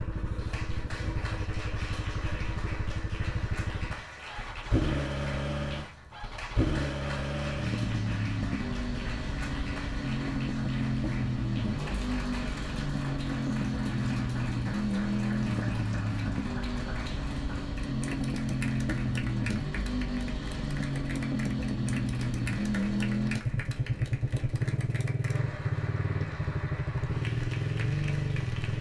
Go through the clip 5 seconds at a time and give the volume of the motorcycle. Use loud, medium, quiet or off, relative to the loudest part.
medium, loud, loud, loud, loud, loud.